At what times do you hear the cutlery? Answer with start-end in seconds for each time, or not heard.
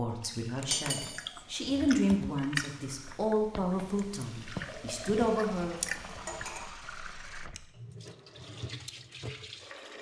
0.7-1.2, 6.2-6.7.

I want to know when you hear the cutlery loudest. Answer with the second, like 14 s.
1 s.